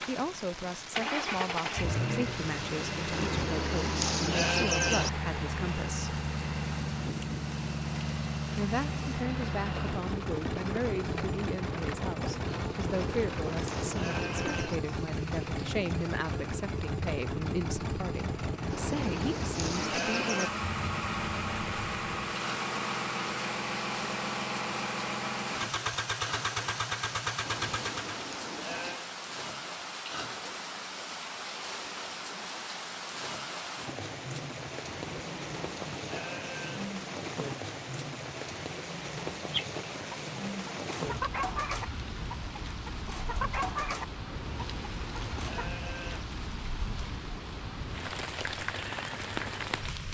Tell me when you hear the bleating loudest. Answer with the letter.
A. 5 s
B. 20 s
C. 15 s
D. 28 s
A.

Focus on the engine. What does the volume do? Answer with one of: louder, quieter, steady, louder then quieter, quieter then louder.
steady.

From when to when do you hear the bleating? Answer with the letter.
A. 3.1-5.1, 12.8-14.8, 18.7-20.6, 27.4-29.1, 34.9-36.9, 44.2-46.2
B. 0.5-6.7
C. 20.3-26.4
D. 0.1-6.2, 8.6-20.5
A.